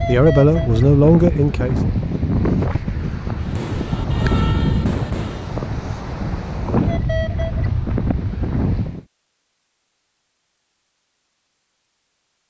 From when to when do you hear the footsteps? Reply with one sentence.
The footsteps can't be heard in this clip.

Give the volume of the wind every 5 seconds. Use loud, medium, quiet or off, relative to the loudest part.
loud, loud, off.